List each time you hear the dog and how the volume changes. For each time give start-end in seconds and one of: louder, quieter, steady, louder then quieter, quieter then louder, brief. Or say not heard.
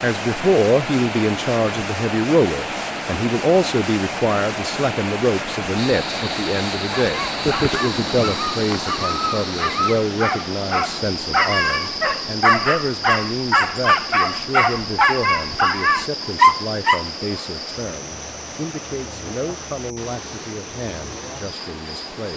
7.0-17.1 louder.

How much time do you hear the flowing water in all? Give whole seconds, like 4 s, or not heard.
22 s.